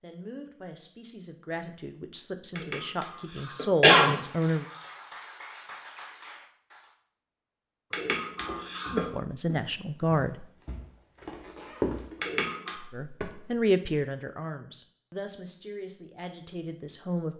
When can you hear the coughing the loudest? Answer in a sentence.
The loudest moment of the coughing is at 4 seconds.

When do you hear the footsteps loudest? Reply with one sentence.
The loudest moment of the footsteps is at 12 seconds.